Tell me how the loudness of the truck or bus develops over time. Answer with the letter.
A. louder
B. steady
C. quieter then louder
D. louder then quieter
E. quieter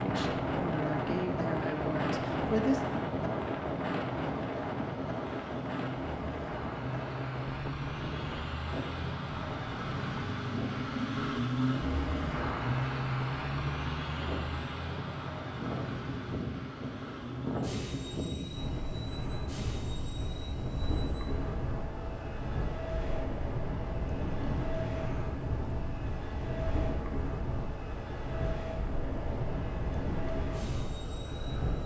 D.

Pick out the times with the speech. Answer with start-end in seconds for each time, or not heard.
0.0-2.8.